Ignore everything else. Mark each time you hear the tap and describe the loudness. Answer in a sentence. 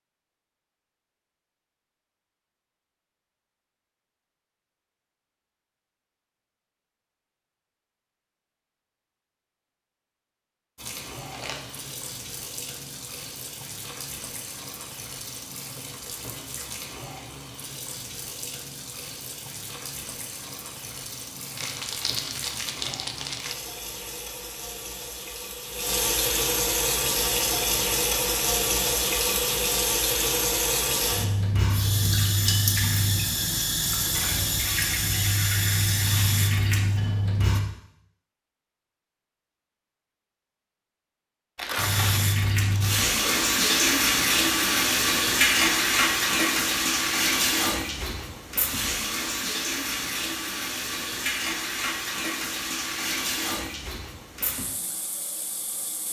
The tap can be heard from 10.8 to 37.6 s, getting louder; and from 41.8 to 56.0 s, getting quieter.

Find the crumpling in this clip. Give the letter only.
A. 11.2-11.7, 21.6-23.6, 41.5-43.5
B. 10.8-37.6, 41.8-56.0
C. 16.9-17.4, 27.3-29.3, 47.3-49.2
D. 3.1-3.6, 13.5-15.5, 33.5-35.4
A.